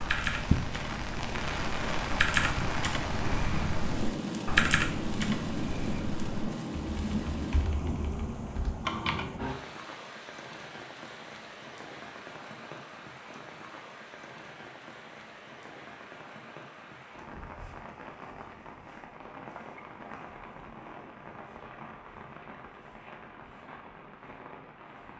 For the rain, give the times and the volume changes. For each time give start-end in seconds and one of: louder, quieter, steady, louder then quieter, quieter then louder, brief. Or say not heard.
0.0-25.1 quieter.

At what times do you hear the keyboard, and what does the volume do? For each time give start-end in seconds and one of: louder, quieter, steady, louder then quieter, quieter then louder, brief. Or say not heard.
0.0-9.2 louder then quieter.